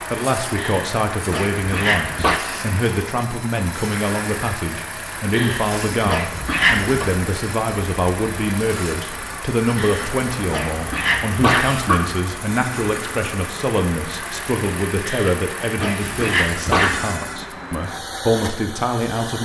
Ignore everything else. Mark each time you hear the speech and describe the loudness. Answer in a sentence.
You can hear the speech from 0.1 to 19.4 s, at a steady volume.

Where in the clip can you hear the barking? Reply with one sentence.
The barking can be heard from 0.6 to 2.4 s, from 5.3 to 7.1 s, from 9.8 to 12.2 s and from 15.1 to 17.1 s.